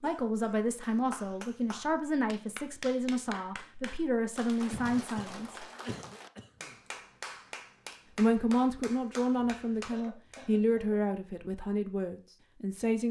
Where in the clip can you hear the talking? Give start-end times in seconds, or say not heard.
0.0-5.7, 8.2-13.0.